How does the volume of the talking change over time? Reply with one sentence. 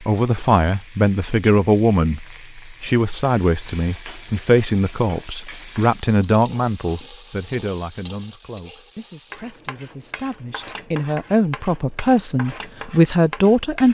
The loudness of the talking goes down, then up.